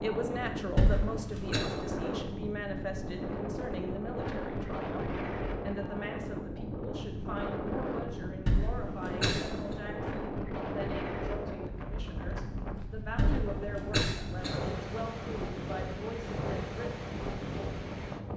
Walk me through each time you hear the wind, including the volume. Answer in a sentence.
The wind can be heard from 0.0 to 18.3 s, at a steady volume.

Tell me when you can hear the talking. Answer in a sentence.
The talking can be heard from 0.0 to 17.1 s.